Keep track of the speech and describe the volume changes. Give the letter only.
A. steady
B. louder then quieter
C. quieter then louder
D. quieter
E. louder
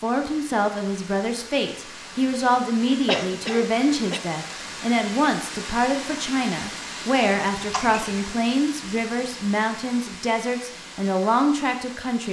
A.